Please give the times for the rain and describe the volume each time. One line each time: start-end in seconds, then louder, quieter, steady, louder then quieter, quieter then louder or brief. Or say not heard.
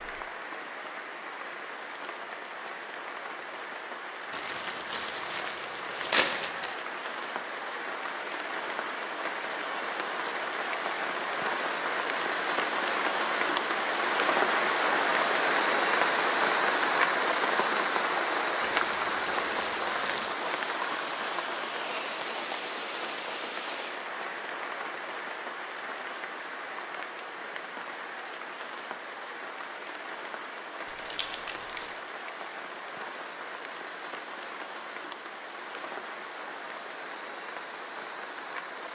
0.0-38.8 louder then quieter.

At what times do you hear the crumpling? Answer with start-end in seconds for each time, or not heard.
4.3-6.8, 18.6-20.4, 30.9-32.0.